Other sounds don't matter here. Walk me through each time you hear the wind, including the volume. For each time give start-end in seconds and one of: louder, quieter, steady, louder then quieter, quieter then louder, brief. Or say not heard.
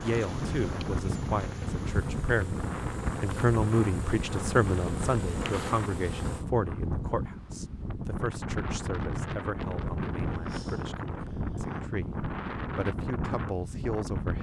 0.0-14.3 steady.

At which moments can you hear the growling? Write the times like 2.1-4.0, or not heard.
9.7-11.8.